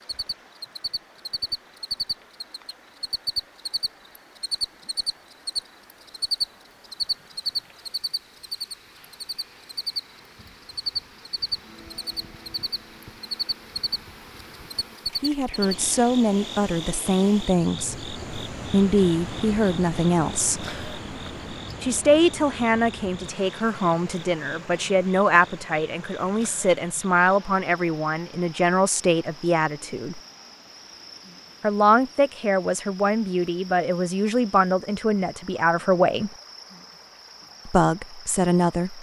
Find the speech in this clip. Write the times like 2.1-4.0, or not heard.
15.2-20.6, 21.8-30.2, 31.6-36.3, 37.6-38.9.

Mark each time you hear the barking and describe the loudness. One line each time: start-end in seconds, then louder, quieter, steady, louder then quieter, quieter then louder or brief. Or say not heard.
not heard.